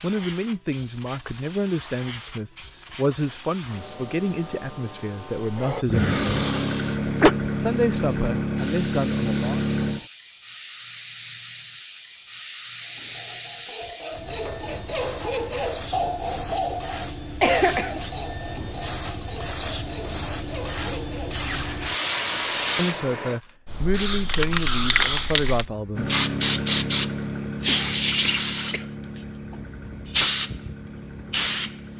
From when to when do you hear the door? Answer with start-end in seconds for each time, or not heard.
not heard.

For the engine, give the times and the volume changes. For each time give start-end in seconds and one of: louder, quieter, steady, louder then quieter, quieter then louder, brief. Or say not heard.
5.9-10.1 steady
25.9-31.9 quieter.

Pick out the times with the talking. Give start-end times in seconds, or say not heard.
0.0-6.2, 7.5-9.6, 22.8-26.1.